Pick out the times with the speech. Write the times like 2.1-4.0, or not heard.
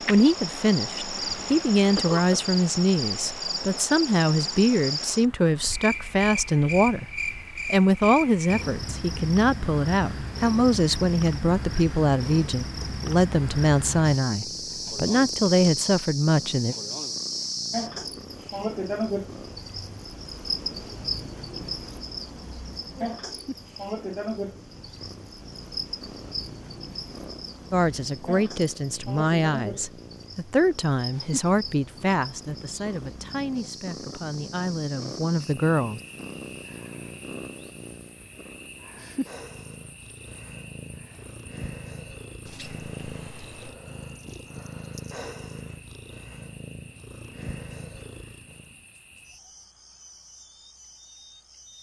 0.1-7.0, 7.7-16.8, 27.7-36.0.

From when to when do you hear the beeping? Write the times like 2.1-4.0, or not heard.
42.5-43.8.